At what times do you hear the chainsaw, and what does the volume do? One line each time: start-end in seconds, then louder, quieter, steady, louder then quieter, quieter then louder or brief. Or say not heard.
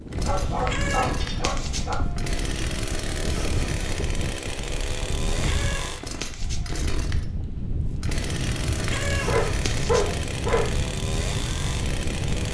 0.1-12.5 steady.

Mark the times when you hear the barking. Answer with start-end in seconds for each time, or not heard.
0.2-1.9, 9.2-10.7.